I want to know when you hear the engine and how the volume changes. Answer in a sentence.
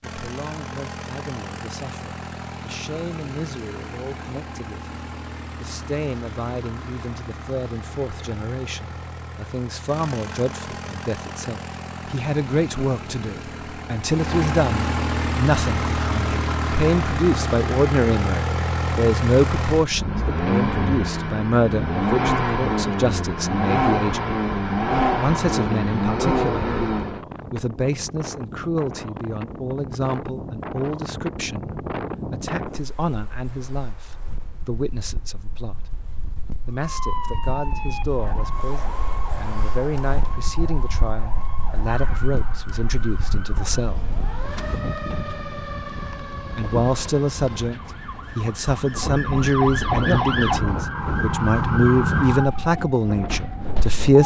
The engine can be heard from 0.0 to 27.2 s, getting louder.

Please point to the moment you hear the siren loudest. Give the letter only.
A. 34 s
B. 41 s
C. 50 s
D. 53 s
C.